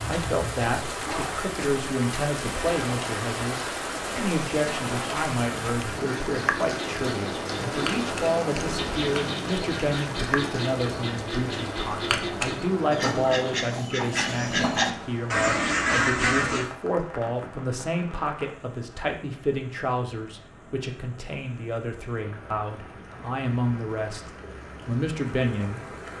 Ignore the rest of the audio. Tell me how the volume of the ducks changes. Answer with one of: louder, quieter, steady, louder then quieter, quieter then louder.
louder.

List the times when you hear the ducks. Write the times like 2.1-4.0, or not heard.
6.7-16.7.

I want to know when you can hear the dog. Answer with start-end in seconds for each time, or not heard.
not heard.